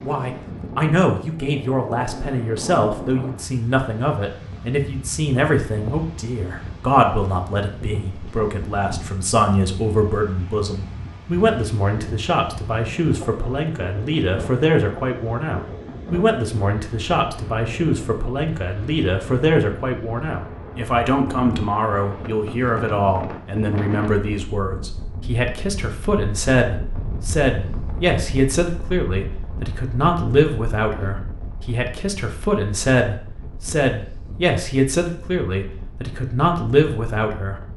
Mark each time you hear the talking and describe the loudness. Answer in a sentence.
The talking can be heard from 0.0 to 37.6 s, at a steady volume.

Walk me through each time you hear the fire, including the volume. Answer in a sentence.
You can't hear the fire here.